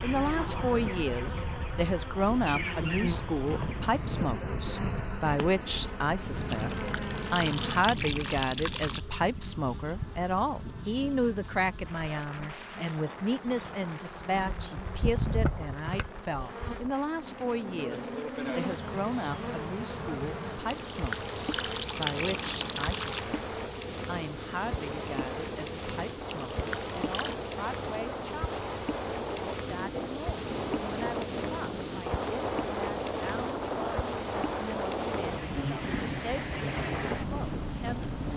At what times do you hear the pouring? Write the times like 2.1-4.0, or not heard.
6.5-9.0, 20.9-23.2, 26.5-27.4.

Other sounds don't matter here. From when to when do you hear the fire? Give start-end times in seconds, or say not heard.
not heard.